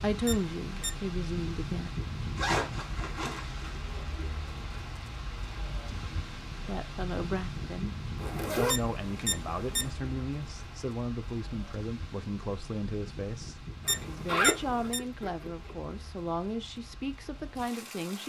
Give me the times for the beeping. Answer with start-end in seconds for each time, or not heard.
0.2-1.0, 8.7-9.9, 13.8-15.0.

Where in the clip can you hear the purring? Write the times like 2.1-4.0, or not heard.
not heard.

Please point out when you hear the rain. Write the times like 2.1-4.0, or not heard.
0.0-18.2.